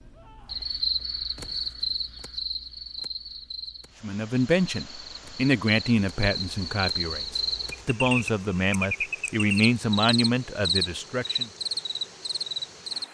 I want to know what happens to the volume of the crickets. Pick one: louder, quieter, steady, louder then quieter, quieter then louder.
quieter then louder.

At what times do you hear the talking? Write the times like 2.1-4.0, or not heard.
4.0-11.5.